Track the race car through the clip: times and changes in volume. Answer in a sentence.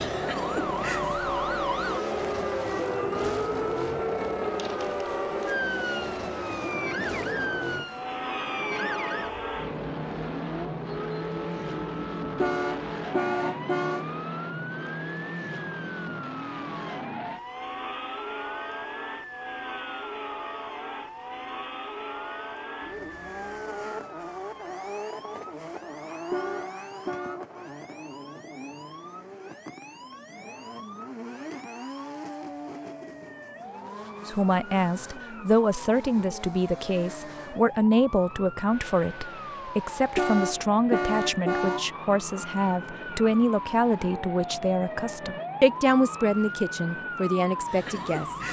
The race car can be heard from 0.0 to 48.4 s, getting quieter.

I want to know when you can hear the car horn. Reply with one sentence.
You can hear the car horn from 12.4 to 14.1 s, from 26.3 to 27.4 s and from 40.1 to 41.9 s.